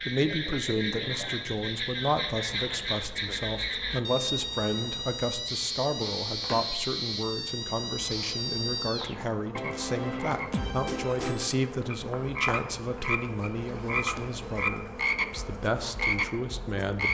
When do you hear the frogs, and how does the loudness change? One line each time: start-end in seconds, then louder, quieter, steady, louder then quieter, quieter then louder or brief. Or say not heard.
0.0-17.0 steady.